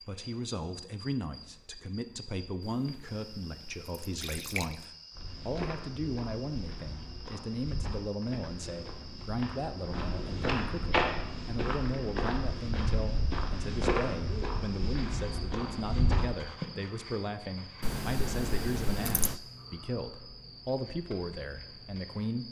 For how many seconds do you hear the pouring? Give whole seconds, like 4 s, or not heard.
4 s.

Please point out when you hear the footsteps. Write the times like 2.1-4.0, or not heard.
5.1-16.6.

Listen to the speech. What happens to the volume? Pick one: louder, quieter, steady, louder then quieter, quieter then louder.
steady.